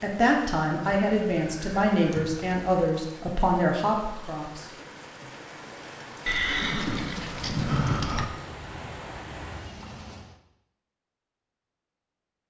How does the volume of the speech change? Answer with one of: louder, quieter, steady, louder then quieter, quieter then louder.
steady.